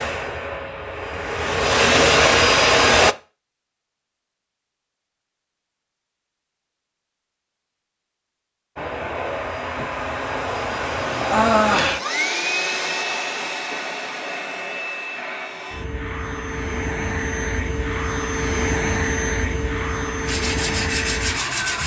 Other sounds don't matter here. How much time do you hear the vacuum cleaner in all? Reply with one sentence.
You can hear the vacuum cleaner for 16 seconds altogether.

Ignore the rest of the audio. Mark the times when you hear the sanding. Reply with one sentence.
You can hear the sanding from 20.2 to 21.8 s.